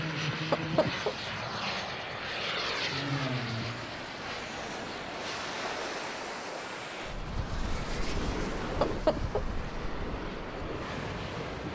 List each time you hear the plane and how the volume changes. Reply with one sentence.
You can hear the plane from 0.0 to 11.6 s, getting quieter.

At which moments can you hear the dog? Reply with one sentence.
The dog can't be heard in this clip.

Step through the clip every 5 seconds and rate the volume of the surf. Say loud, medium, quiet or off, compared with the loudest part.
medium, loud, loud.